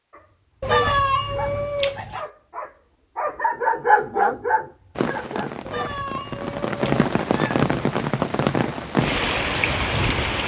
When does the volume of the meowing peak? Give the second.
1 s.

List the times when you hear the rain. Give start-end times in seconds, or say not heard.
5.0-10.4.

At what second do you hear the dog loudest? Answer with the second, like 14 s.
4 s.